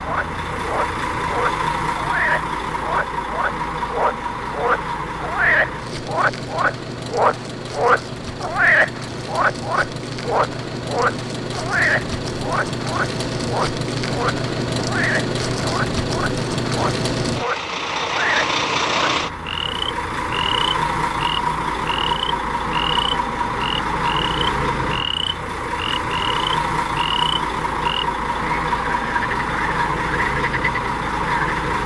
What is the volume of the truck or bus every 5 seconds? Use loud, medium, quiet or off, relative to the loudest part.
loud, medium, loud, loud, loud, loud, loud.